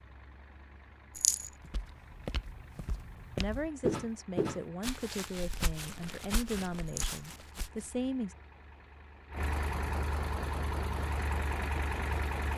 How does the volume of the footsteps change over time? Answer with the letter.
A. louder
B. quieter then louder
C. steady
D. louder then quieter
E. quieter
D.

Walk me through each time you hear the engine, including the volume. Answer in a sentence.
The engine can be heard from 0.0 to 12.5 s, getting louder.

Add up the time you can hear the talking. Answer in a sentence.
You can hear the talking for 5 seconds altogether.